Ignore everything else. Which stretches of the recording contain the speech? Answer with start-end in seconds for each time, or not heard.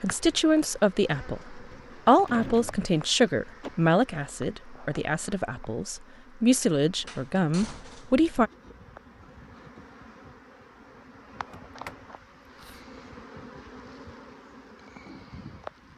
0.0-8.5.